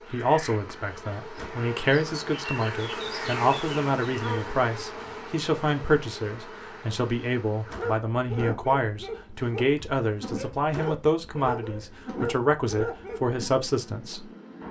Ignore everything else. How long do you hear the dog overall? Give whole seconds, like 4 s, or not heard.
6 s.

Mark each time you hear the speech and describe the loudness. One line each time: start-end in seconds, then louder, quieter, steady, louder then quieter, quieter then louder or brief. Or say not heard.
0.1-14.2 steady.